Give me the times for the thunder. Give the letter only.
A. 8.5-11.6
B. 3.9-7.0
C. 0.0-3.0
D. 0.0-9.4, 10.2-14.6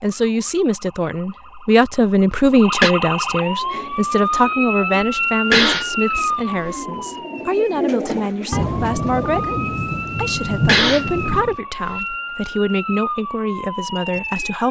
A.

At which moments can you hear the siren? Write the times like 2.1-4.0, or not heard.
0.1-14.6.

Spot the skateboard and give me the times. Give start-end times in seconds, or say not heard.
not heard.